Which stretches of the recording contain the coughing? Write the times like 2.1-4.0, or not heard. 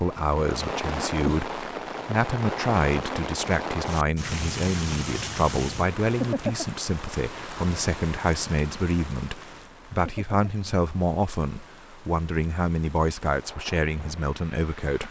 not heard.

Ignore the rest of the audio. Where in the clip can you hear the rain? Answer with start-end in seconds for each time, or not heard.
0.0-15.0.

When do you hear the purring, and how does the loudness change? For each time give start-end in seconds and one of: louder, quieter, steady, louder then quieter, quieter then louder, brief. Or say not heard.
not heard.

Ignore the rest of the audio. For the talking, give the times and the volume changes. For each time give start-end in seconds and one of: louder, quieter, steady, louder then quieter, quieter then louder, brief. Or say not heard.
0.0-15.0 steady.